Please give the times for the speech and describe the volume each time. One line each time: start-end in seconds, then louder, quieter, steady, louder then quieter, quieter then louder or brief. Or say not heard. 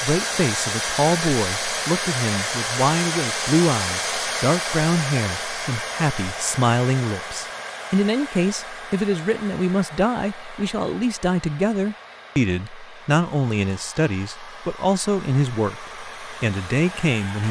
0.0-17.4 steady.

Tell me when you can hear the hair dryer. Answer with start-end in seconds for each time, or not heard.
0.0-17.4.